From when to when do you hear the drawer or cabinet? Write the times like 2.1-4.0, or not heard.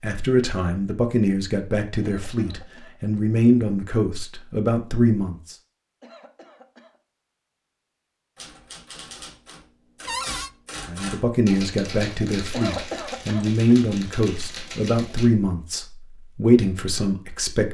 10.1-10.5.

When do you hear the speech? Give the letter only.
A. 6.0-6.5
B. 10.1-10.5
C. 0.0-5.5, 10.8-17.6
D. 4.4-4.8
C.